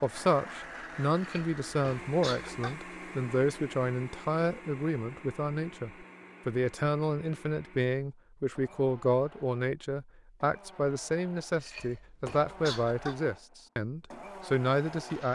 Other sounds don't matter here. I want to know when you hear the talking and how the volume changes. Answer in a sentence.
The talking can be heard from 0.0 to 15.3 s, at a steady volume.